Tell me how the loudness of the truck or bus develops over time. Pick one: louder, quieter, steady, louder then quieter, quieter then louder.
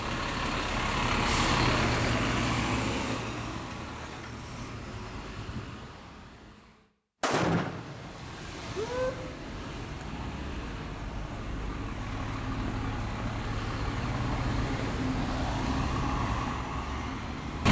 quieter then louder.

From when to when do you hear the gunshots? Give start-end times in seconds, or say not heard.
7.2-9.1.